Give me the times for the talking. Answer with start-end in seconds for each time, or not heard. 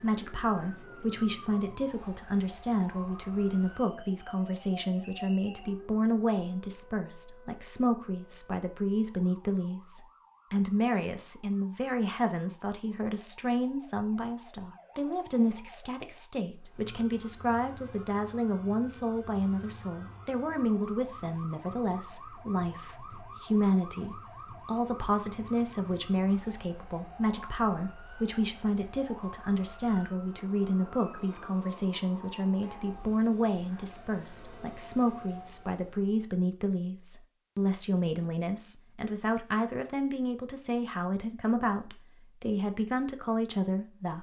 0.0-44.1.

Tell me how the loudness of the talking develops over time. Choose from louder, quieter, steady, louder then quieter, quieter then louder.
steady.